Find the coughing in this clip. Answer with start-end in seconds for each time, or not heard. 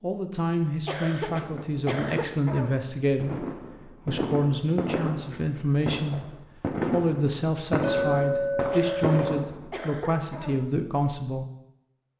0.8-2.8, 8.7-10.7.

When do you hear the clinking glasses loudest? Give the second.
8 s.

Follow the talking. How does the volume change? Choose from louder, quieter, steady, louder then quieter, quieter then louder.
steady.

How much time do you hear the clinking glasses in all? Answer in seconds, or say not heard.
2 s.